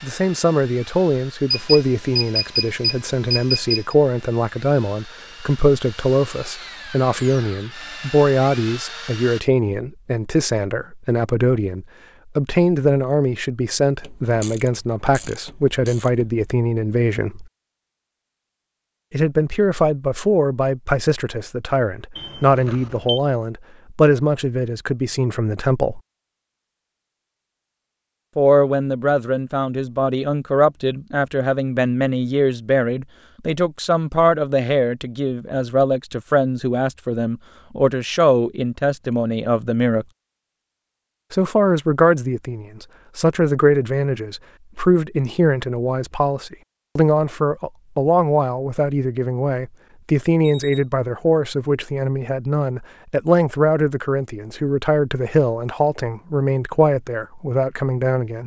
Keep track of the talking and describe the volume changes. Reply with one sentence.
The loudness of the talking stays about the same.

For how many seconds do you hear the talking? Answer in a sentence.
You can hear the talking for 53 seconds altogether.